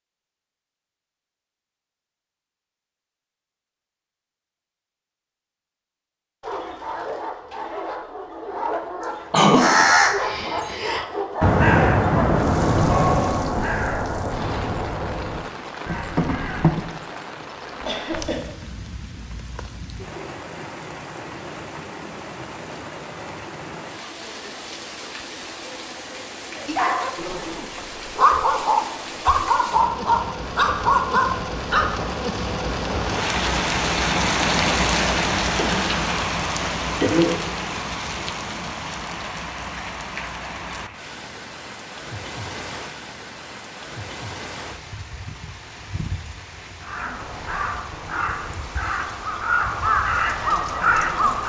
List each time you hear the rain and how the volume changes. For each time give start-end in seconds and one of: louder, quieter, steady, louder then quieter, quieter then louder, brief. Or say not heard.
12.3-51.4 louder then quieter.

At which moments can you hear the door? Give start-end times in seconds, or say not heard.
not heard.